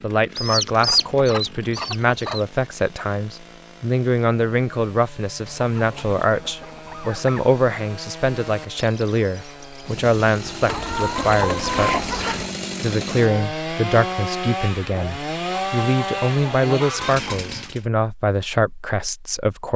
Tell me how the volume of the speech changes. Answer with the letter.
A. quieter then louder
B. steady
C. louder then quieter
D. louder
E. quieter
B.